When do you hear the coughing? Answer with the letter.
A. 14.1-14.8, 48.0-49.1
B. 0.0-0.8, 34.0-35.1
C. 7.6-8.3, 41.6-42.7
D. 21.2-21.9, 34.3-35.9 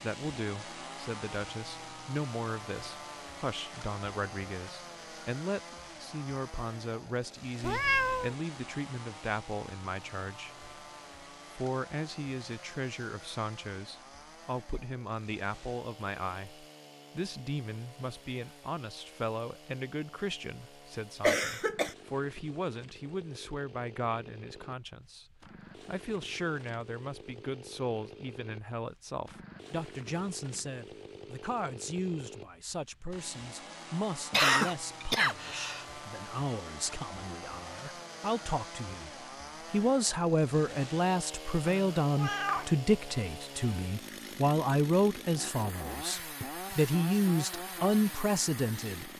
D.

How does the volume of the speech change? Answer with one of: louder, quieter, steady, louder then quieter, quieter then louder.
louder.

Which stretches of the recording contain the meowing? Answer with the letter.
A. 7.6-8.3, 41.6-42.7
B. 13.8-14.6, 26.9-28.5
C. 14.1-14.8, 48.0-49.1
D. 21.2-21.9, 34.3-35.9
A.